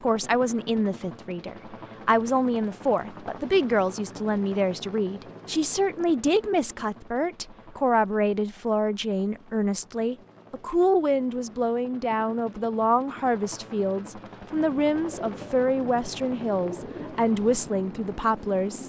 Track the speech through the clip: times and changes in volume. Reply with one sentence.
You can hear the speech from 0.0 to 18.8 s, at a steady volume.